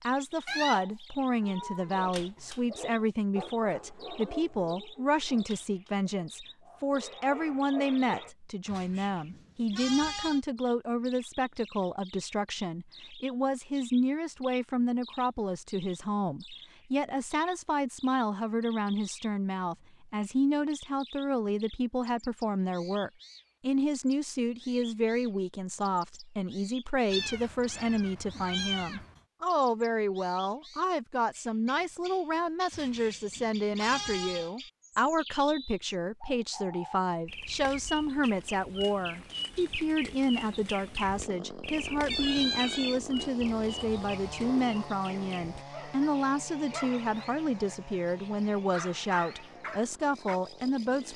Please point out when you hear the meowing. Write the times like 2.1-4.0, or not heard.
0.5-1.9, 27.1-29.2, 42.1-43.0.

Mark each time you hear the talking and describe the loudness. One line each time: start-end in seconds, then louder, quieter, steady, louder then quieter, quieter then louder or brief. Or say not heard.
0.0-51.1 steady.